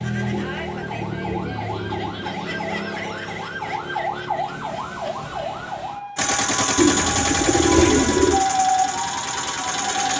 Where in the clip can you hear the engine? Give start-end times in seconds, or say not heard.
6.2-10.1.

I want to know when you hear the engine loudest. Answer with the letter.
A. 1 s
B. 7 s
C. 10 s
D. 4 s
B.